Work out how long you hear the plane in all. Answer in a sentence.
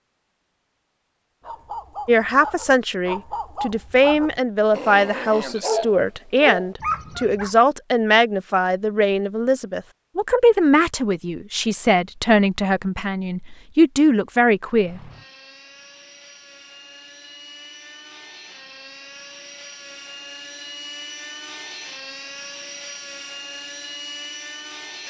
You can hear the plane for 10 seconds altogether.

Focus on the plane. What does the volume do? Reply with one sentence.
The loudness of the plane goes up.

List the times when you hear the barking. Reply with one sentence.
The barking can be heard from 1.4 to 7.5 s.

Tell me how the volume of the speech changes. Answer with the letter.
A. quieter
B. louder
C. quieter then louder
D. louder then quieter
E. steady
E.